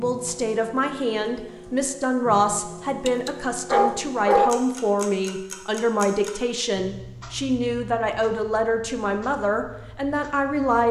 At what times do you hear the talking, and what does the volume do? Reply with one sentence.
You can hear the talking from 0.0 to 10.8 s, at a steady volume.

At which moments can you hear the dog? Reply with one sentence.
The dog can be heard from 3.0 to 4.6 s.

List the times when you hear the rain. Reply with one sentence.
The rain can't be heard in this clip.